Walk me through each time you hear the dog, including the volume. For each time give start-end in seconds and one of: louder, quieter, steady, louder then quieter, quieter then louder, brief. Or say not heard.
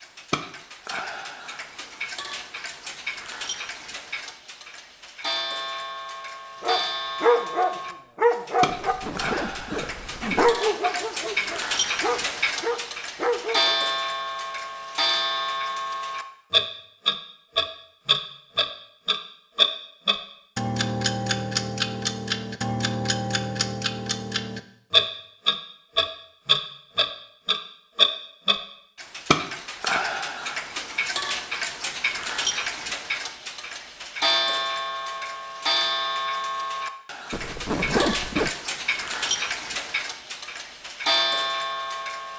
6.6-8.9 brief
9.7-13.8 quieter then louder.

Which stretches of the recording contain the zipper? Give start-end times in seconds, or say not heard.
8.7-10.6, 37.3-38.5.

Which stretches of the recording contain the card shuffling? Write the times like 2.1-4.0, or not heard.
not heard.